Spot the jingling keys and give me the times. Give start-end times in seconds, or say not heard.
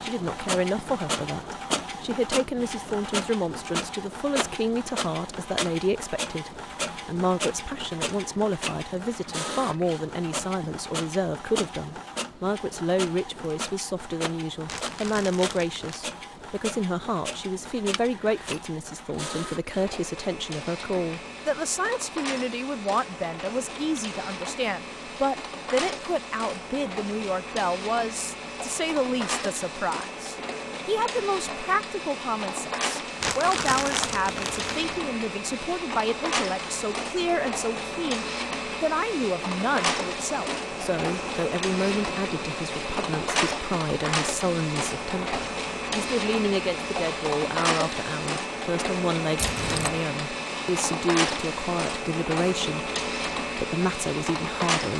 17.9-18.6, 49.4-50.0.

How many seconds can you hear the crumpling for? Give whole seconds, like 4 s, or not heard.
3 s.